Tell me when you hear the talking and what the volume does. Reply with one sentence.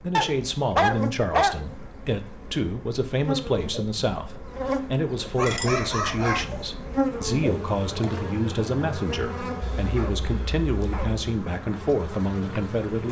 The talking can be heard from 0.0 to 13.0 s, at a steady volume.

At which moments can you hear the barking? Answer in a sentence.
The barking can be heard from 0.1 to 1.6 s, from 5.3 to 6.7 s and from 9.6 to 11.2 s.